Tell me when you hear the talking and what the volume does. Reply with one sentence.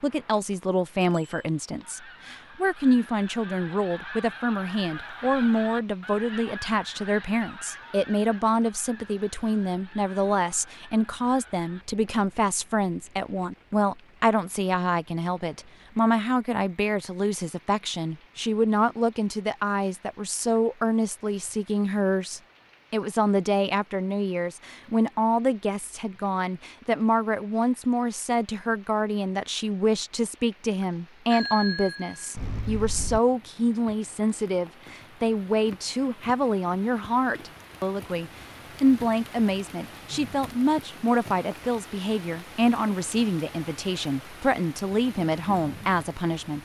You can hear the talking from 0.0 to 46.6 s, at a steady volume.